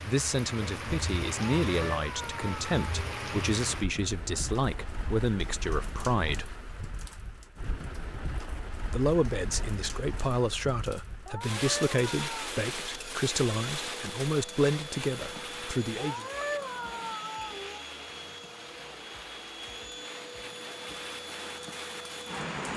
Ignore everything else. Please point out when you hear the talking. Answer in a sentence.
You can hear the talking from 0.0 to 6.5 s and from 8.9 to 16.2 s.